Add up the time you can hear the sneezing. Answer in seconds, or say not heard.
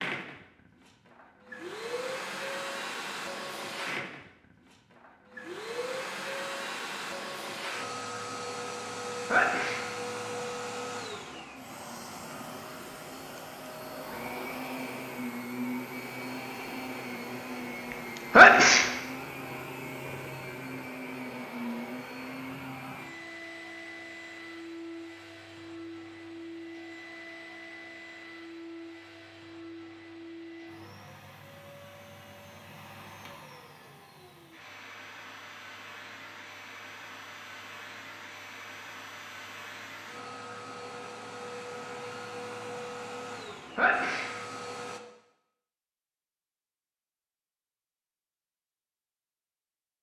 2 s.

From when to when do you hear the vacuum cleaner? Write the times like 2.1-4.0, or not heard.
0.0-45.0.